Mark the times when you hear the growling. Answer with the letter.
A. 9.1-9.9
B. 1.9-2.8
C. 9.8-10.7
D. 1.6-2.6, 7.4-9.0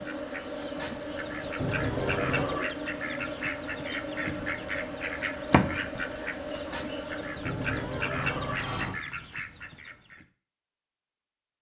B.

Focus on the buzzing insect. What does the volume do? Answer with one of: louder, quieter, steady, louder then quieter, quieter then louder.
steady.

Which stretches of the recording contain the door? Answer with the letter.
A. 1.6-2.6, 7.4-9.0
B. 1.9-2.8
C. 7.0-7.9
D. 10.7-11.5
A.